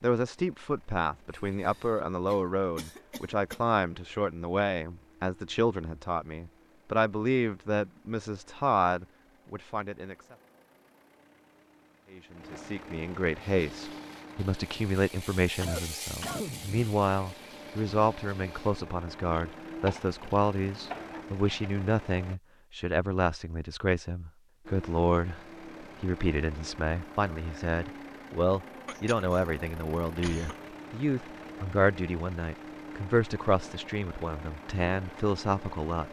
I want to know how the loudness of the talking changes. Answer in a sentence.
The volume of the talking stays about the same.